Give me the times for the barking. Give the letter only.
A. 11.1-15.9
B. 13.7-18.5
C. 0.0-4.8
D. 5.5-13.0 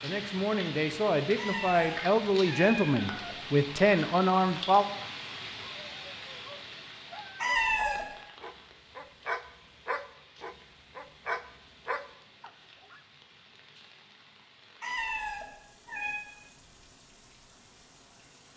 D.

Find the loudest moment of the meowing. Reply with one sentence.
The loudest moment of the meowing is at 8 seconds.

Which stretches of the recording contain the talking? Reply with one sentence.
The talking can be heard from 0.0 to 4.8 s.